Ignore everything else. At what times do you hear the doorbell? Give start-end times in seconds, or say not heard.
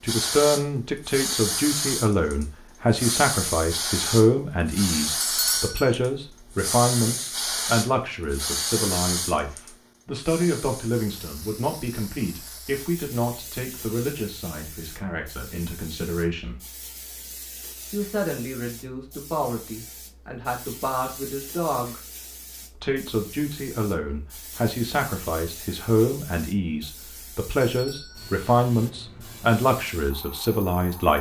5.2-6.0, 27.6-28.4.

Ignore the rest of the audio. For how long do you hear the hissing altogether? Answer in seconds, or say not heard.
31 s.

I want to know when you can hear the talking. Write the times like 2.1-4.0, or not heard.
0.0-16.6, 17.9-22.0, 22.8-31.1.